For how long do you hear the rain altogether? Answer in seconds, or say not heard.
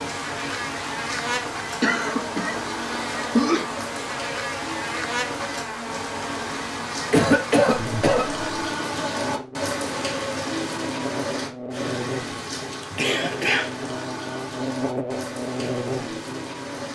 17 s.